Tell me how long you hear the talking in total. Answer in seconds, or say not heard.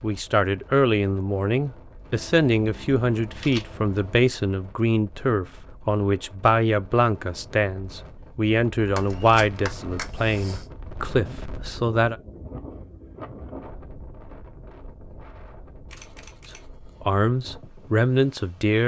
14 s.